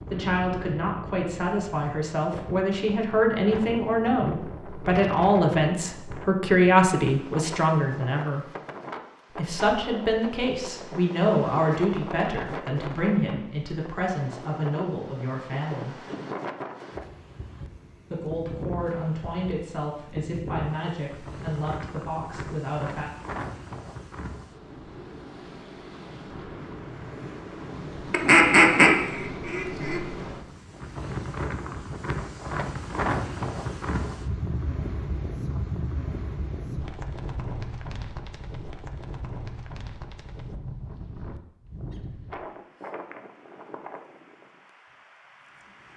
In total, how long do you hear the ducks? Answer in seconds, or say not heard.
2 s.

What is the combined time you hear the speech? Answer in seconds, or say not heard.
20 s.